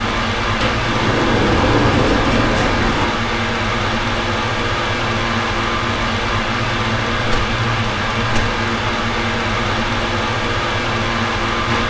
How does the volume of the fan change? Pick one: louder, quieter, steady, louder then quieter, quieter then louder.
steady.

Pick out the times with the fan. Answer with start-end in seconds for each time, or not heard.
0.0-11.8.